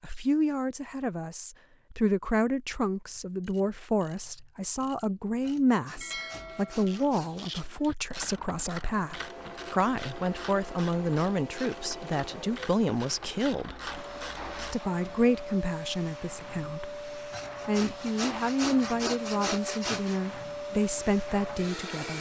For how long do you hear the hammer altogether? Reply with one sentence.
You can't hear the hammer here.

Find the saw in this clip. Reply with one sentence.
You can hear the saw from 5.4 to 7.7 s and from 17.3 to 20.2 s.